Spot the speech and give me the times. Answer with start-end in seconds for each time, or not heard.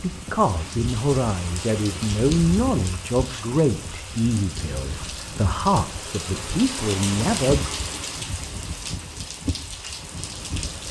0.0-7.7.